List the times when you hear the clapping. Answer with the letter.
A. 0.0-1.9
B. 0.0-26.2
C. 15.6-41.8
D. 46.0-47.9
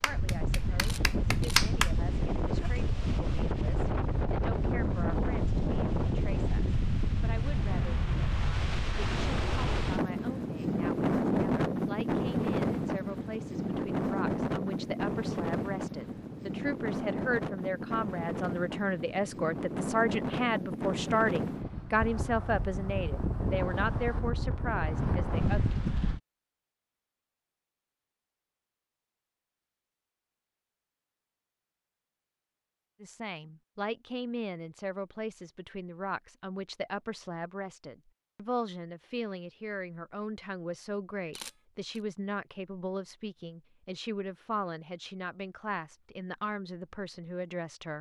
A.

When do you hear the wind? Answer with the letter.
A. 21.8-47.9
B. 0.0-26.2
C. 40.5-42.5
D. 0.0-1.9
B.